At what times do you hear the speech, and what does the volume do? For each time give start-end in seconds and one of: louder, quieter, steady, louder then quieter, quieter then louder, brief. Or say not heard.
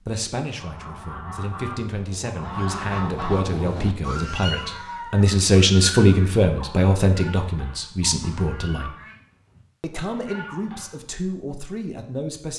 0.0-8.9 louder then quieter
9.8-12.5 brief.